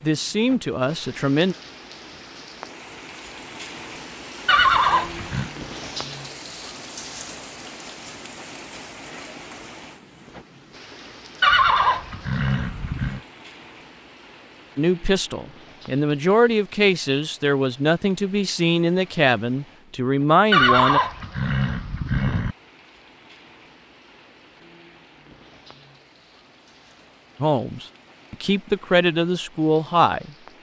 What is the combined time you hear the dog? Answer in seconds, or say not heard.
not heard.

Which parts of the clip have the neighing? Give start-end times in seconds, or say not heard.
4.5-5.5, 11.4-13.2, 20.5-22.6.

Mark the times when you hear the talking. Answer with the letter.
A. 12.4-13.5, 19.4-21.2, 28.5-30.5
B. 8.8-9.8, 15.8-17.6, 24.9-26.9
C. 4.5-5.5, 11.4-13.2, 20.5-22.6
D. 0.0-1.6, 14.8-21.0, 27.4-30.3
D.